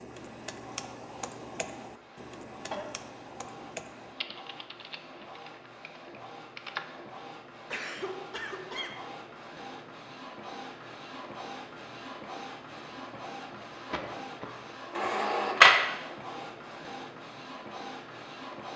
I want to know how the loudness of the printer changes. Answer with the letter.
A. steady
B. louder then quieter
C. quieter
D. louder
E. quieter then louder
D.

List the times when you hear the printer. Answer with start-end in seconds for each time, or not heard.
0.0-18.7.